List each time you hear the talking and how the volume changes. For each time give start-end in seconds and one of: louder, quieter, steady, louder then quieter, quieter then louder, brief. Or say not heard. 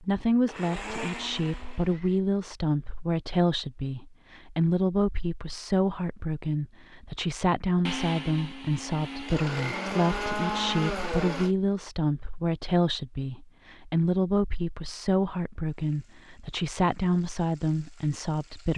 0.0-18.7 steady.